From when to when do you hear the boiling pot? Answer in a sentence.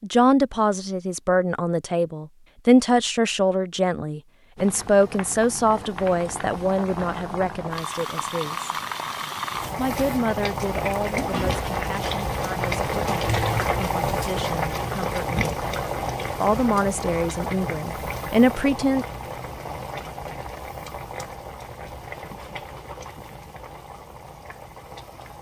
The boiling pot can be heard from 4.5 to 25.3 s.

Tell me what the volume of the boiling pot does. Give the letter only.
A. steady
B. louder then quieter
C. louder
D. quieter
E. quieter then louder
B.